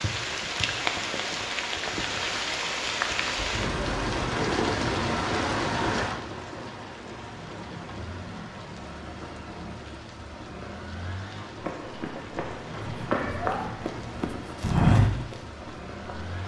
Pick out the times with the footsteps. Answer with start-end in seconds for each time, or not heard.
11.6-16.4.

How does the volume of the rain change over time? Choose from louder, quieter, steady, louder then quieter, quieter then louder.
quieter.